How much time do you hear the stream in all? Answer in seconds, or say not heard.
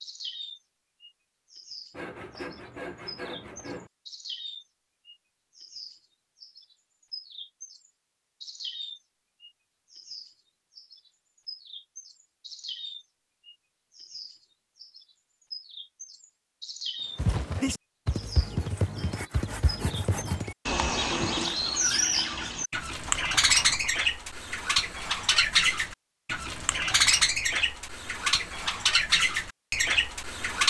not heard.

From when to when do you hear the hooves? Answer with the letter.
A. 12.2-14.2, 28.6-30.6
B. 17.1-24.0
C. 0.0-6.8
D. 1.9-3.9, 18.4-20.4
B.